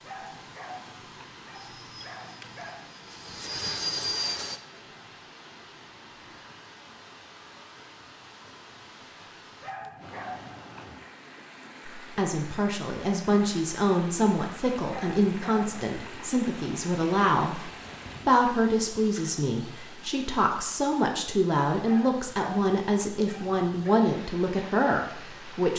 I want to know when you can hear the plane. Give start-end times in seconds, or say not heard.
1.5-4.6.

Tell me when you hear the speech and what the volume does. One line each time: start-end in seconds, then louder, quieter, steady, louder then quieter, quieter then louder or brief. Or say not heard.
11.9-25.7 steady.